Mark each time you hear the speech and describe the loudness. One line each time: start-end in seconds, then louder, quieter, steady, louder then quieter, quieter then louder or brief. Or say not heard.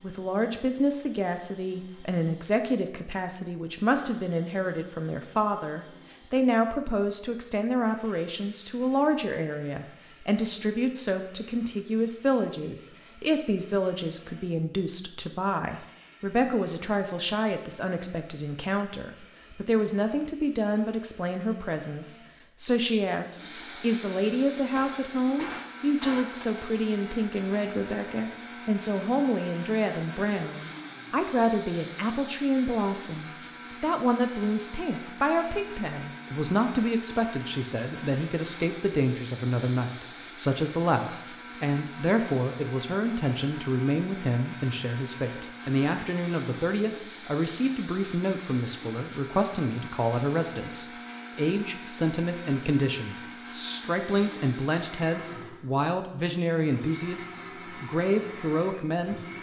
0.0-59.3 steady.